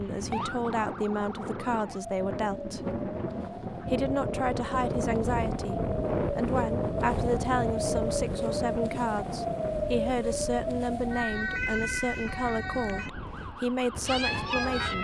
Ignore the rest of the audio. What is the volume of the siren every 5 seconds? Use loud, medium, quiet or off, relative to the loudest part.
medium, loud, loud.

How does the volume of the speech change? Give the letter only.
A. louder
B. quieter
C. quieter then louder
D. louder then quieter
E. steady
E.